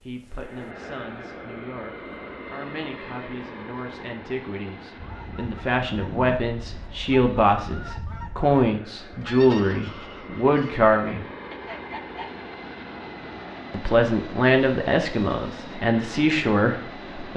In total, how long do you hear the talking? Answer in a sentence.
You can hear the talking for 15 seconds altogether.